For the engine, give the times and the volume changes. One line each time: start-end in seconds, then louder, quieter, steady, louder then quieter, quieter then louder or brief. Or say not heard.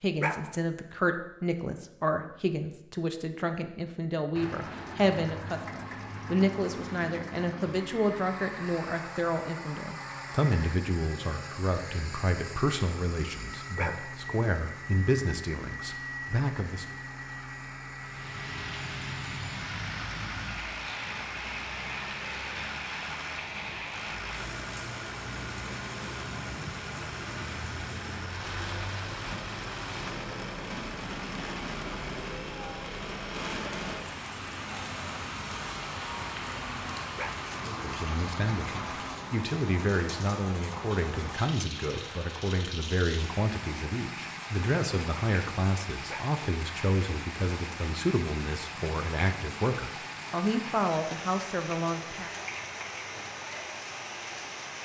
4.2-39.1 steady.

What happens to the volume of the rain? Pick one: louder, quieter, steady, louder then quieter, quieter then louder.
steady.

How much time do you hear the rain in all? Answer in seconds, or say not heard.
37 s.